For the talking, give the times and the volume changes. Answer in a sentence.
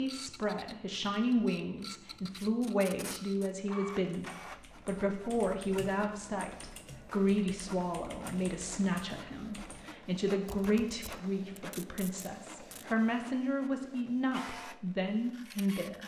The talking can be heard from 0.0 to 16.0 s, at a steady volume.